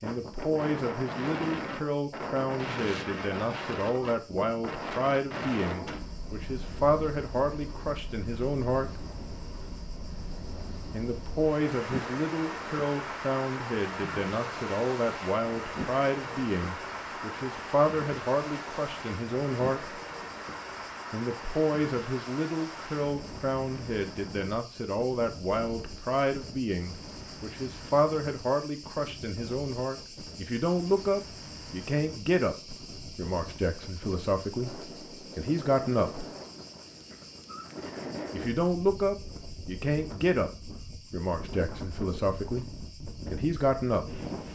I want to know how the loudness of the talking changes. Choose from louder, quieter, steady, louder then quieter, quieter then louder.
steady.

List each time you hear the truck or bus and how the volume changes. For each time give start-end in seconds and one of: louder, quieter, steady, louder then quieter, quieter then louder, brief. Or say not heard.
not heard.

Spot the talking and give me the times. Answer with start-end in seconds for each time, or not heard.
0.0-9.1, 10.9-19.9, 21.1-36.3, 38.3-44.2.